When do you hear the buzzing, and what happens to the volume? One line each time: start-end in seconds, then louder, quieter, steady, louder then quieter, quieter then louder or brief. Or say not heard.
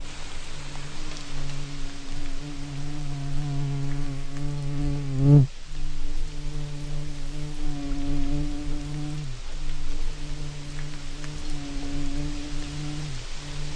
0.0-13.7 louder then quieter.